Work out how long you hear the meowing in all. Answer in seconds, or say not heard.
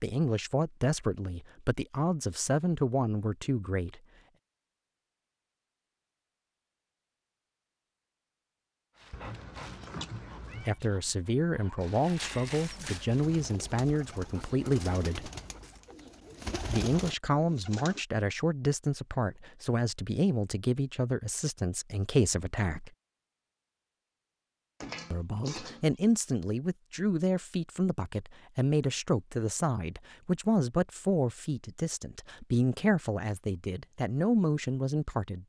3 s.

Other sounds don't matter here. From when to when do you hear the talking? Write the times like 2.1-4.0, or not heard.
0.0-4.0, 10.7-15.3, 16.6-22.9, 25.1-35.4.